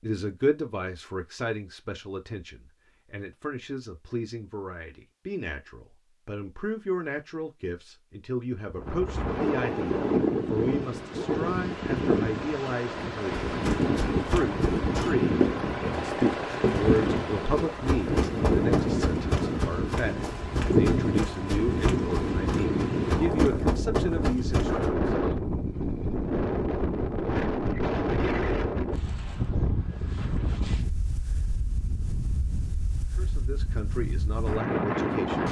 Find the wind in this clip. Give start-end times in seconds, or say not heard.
8.7-35.4.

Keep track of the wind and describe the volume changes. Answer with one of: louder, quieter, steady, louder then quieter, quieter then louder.
quieter.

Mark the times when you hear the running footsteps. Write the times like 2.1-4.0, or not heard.
13.4-24.9.